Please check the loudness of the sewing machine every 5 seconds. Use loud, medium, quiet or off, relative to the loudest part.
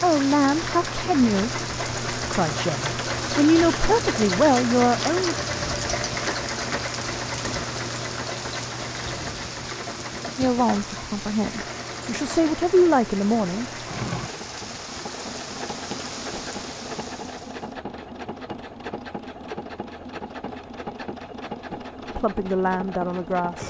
loud, loud, medium, medium, medium.